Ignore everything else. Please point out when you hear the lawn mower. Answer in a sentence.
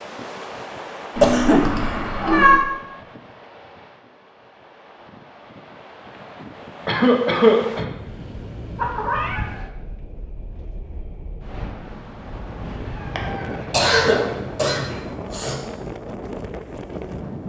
The lawn mower can't be heard in this clip.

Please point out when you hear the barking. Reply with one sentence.
You can't hear the barking here.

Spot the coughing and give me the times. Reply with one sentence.
You can hear the coughing from 1.2 to 2.0 s, from 6.8 to 7.8 s and from 13.7 to 15.6 s.